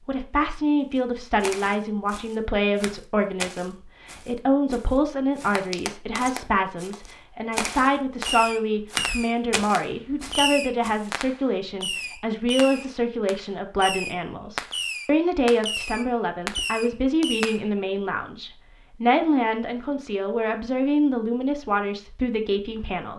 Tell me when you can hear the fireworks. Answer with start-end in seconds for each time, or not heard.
8.2-17.6.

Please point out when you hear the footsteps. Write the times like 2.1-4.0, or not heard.
0.9-11.1.